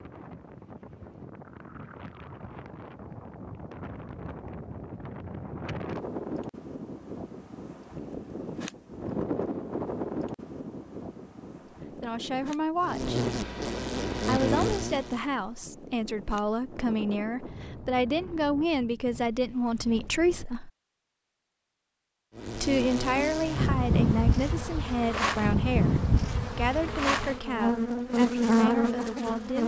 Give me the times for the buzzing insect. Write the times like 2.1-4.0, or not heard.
12.8-15.2, 22.4-29.6.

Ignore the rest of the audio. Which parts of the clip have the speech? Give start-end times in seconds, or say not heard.
11.9-13.2, 14.2-20.7, 22.6-29.6.